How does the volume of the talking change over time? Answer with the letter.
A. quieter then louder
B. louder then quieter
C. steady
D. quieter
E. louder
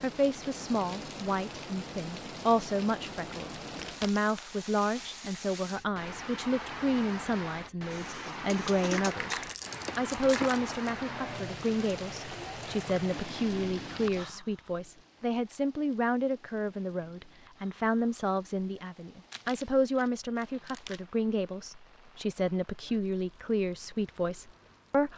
C.